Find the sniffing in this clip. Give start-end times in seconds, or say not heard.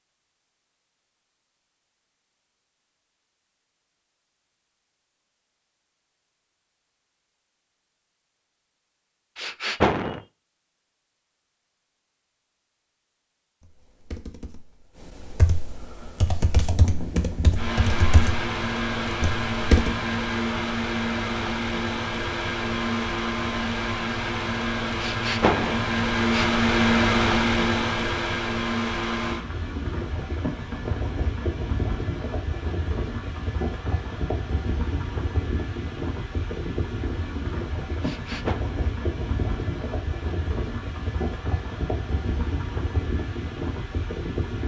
9.3-10.2, 24.9-26.5, 38.0-38.6.